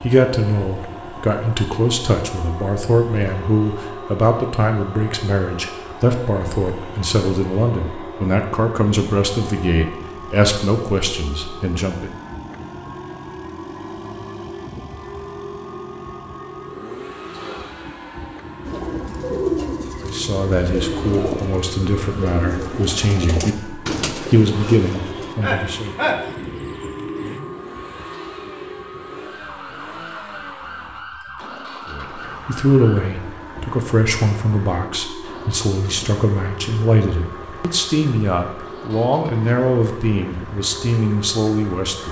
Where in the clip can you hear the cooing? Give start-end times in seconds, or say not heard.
18.6-27.4.